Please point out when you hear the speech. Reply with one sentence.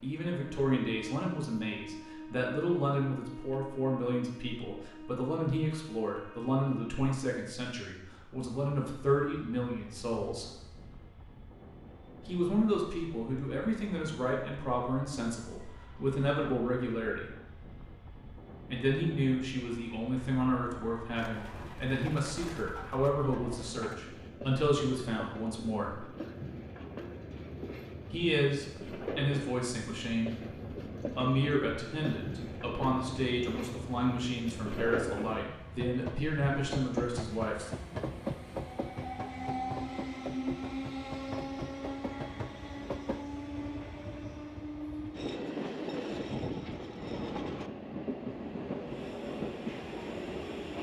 You can hear the speech from 0.0 to 10.5 s, from 12.2 to 17.2 s, from 18.7 to 26.1 s, from 28.1 to 30.4 s and from 31.1 to 37.7 s.